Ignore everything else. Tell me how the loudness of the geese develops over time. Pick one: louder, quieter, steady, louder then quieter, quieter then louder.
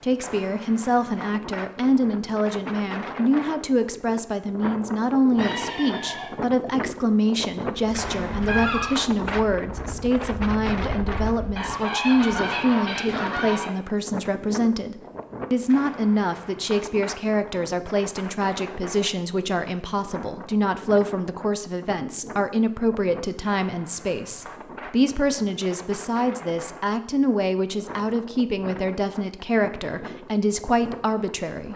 quieter then louder.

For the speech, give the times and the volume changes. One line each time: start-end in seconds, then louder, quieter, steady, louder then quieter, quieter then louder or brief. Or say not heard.
0.0-31.7 steady.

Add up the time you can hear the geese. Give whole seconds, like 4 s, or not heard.
6 s.